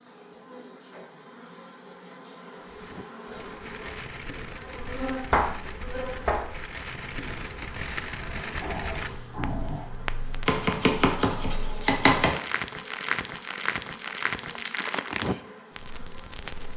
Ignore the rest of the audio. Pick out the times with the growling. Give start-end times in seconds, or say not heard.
8.6-9.9.